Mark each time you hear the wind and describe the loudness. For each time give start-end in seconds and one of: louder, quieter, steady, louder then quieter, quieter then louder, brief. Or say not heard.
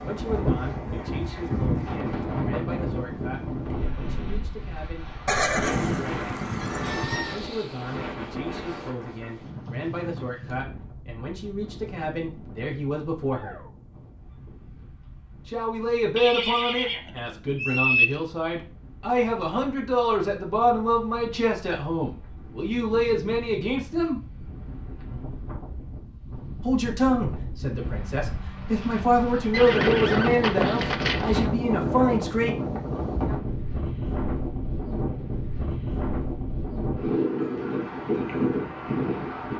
0.0-39.5 quieter then louder.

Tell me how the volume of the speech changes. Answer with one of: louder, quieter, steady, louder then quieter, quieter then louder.
louder.